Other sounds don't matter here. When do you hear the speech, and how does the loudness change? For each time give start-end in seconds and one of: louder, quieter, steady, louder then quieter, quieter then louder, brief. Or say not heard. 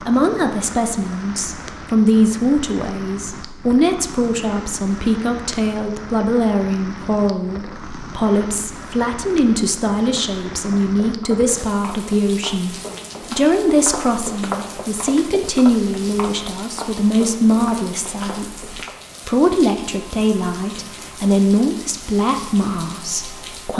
0.0-23.7 steady.